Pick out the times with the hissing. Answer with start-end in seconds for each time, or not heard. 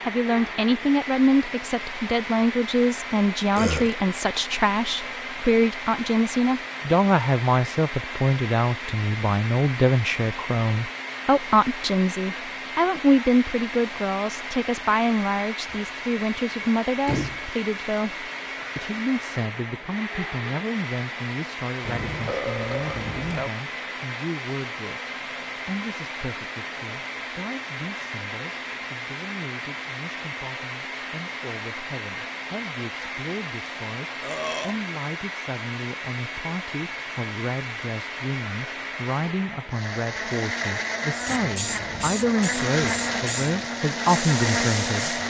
41.1-45.2.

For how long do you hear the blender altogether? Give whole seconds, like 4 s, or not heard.
45 s.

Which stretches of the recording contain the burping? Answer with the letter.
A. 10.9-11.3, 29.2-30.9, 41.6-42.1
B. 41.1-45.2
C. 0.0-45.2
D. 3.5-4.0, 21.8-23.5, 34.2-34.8
D.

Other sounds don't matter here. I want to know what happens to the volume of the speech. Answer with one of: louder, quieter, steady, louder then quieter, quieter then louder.
quieter then louder.